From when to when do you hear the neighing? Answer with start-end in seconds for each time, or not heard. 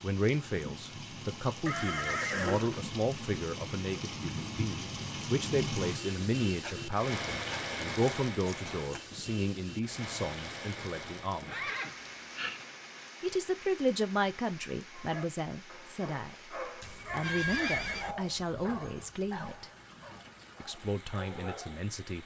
1.6-2.9, 11.4-12.7, 16.8-18.1.